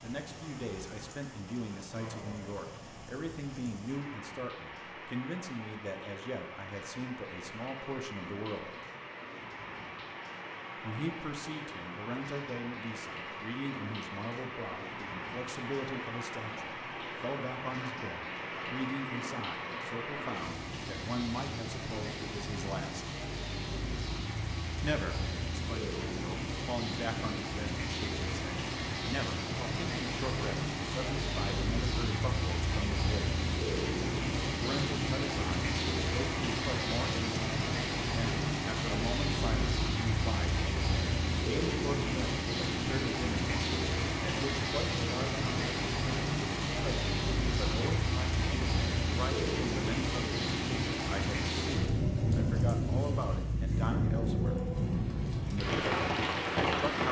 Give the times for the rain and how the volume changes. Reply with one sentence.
You can hear the rain from 0.0 to 57.0 s, getting louder.